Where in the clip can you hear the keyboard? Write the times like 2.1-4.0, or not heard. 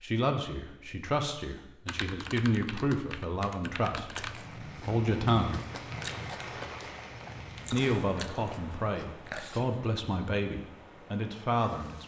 1.9-4.4.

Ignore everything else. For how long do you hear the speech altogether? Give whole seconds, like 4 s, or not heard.
10 s.